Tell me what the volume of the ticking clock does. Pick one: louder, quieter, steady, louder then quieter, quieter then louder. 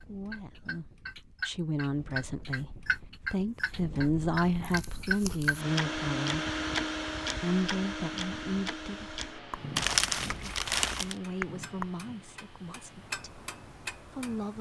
quieter.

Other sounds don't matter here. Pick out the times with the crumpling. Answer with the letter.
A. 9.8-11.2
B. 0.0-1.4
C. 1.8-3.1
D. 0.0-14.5
A.